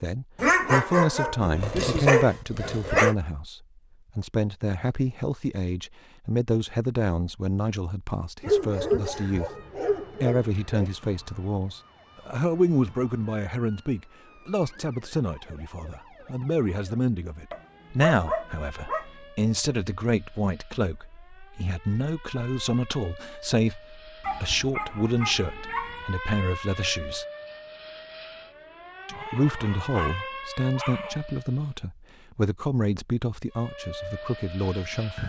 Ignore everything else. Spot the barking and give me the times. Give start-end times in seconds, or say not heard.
0.3-3.1, 8.4-10.8, 17.5-19.1, 24.2-26.2, 29.1-31.2.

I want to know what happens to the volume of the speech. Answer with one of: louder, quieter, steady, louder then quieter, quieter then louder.
steady.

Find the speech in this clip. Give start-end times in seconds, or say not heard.
0.0-9.5, 10.2-27.2, 29.1-35.2.